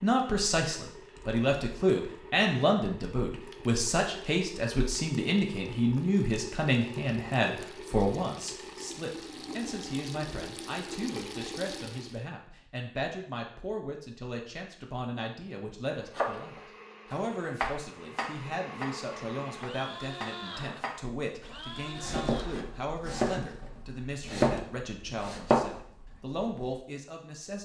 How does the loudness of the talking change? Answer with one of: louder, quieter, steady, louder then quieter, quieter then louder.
quieter.